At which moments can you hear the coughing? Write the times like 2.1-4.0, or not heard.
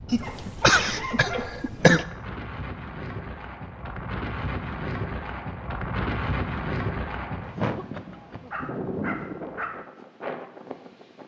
0.1-2.0, 7.5-8.5.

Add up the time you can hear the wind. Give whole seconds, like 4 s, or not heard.
11 s.